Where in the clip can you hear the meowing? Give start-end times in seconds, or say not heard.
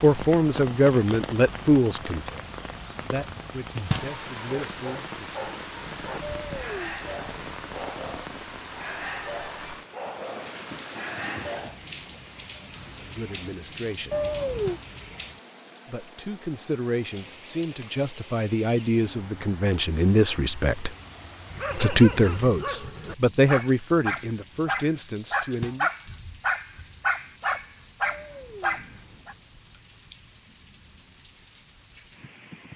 6.2-7.2, 14.1-14.8, 28.0-29.2.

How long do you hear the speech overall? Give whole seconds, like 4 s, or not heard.
16 s.